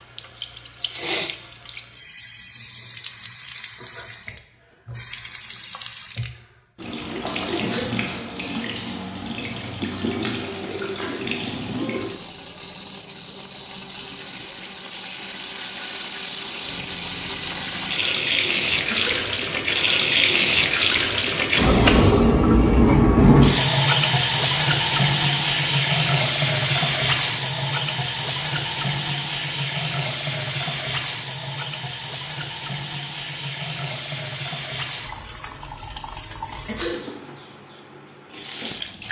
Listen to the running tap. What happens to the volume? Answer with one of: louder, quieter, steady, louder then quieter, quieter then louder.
louder then quieter.